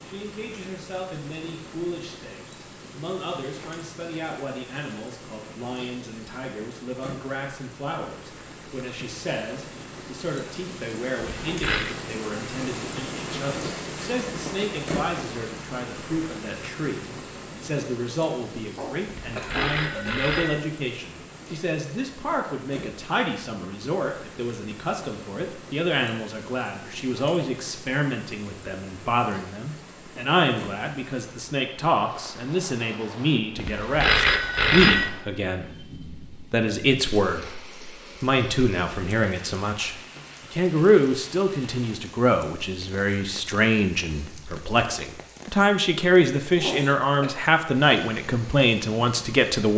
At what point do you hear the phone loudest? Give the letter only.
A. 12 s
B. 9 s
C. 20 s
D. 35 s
D.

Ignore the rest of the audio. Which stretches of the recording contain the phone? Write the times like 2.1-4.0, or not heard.
11.4-11.9, 19.1-20.6, 33.5-35.1.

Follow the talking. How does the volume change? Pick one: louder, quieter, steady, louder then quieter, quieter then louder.
louder.